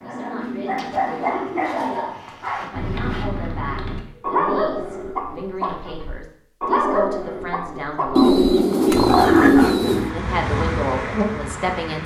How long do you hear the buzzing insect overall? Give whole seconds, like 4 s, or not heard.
2 s.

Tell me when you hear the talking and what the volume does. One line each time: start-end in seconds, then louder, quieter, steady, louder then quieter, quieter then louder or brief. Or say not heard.
0.0-8.4 louder
10.1-12.0 brief.